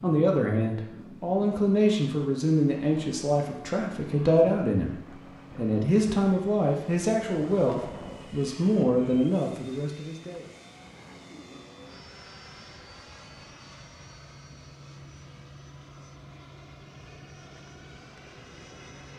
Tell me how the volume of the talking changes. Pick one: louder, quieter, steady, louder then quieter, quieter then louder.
steady.